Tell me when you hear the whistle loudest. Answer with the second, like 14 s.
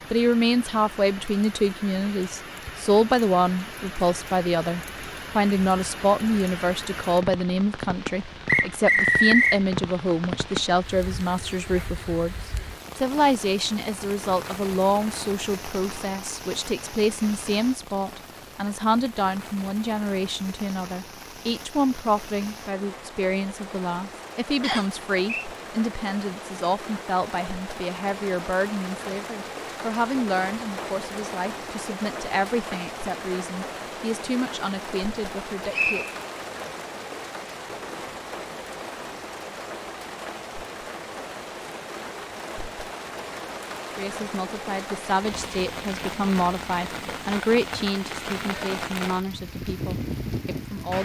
9 s.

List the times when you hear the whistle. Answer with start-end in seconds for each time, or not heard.
8.4-9.6, 24.6-25.4, 35.7-36.1.